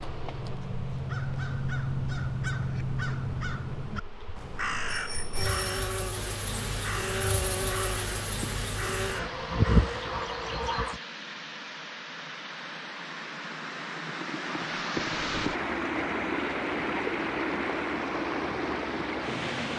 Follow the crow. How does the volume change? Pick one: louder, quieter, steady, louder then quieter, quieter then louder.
quieter.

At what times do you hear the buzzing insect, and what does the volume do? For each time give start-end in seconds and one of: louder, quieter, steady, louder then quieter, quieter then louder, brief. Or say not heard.
0.0-11.0 louder.